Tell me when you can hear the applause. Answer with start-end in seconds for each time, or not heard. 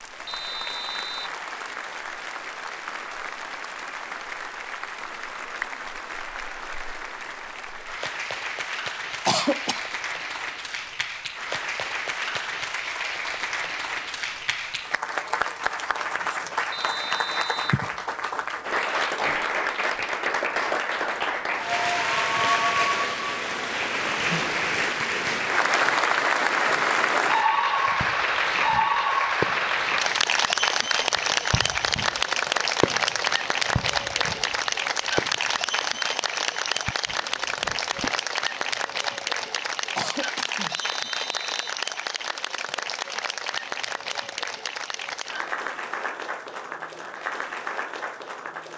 0.0-48.7.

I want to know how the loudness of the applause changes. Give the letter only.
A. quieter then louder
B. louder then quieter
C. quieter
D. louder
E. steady
B.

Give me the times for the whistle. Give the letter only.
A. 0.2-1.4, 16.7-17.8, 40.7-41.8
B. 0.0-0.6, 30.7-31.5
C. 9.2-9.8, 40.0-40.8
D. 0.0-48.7
A.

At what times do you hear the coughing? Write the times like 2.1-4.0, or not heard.
9.2-9.8, 40.0-40.8.